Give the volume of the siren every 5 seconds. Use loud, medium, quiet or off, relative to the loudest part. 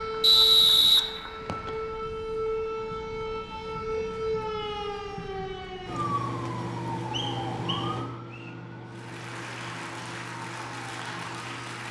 loud, loud, medium.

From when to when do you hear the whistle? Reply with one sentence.
The whistle can be heard from 0.2 to 1.7 s and from 7.1 to 8.5 s.